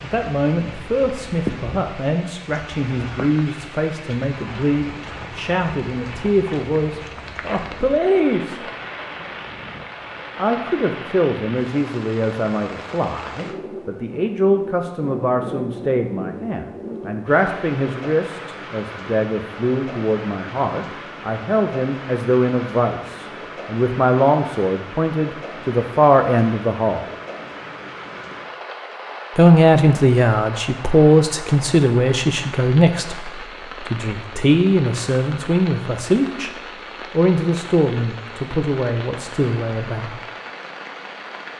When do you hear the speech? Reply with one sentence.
You can hear the speech from 0.0 to 8.6 s, from 10.3 to 27.1 s, from 29.4 to 36.5 s and from 37.1 to 40.2 s.